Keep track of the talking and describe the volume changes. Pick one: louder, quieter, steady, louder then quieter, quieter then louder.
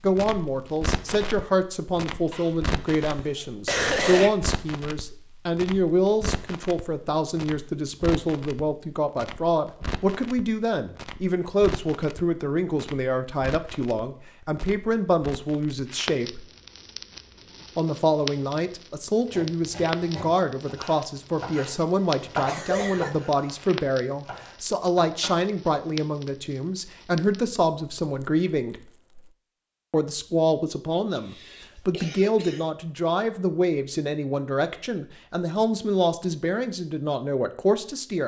steady.